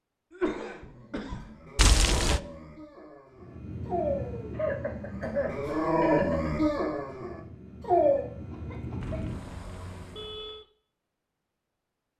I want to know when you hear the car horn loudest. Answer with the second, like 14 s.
2 s.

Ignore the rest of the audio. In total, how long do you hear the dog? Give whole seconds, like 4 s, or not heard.
8 s.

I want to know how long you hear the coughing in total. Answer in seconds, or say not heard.
5 s.